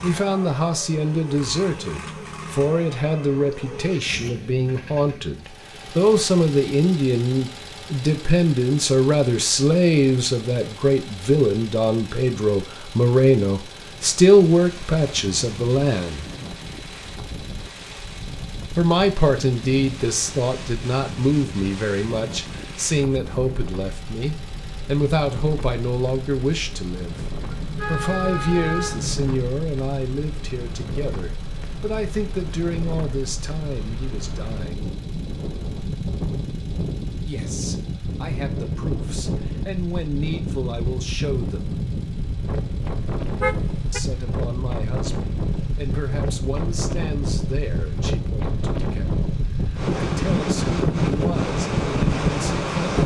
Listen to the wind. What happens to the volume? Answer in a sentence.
The volume of the wind goes up.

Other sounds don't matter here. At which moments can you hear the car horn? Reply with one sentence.
The car horn can be heard from 2.6 to 3.9 s, from 27.5 to 29.5 s and from 43.4 to 44.0 s.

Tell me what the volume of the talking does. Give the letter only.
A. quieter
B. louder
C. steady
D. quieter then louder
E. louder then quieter
A.